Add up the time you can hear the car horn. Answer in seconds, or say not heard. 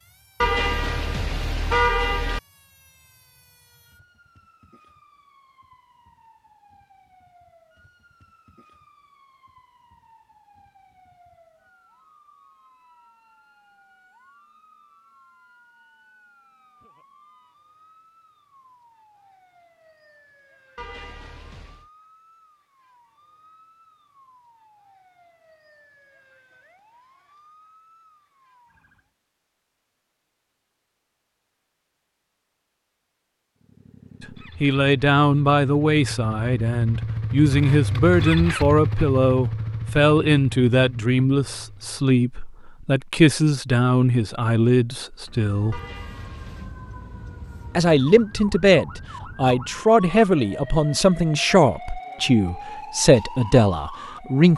4 s.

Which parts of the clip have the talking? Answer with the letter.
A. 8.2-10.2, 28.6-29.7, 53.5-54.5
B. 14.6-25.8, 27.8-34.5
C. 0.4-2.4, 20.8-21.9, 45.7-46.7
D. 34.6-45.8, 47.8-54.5
D.